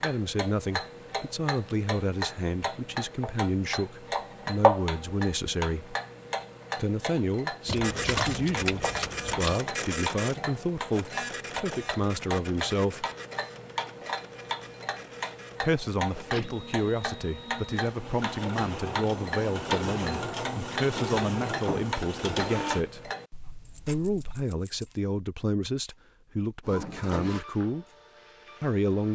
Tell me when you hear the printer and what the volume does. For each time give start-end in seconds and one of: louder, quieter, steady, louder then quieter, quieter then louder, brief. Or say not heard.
7.8-22.9 quieter then louder
26.6-29.0 brief.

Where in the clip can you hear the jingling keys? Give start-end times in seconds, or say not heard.
7.7-9.6, 23.6-25.0.